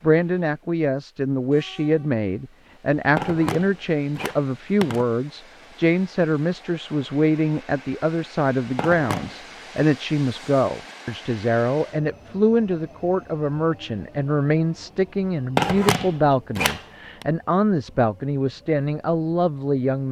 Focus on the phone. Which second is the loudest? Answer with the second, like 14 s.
16 s.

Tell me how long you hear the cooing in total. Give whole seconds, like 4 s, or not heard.
not heard.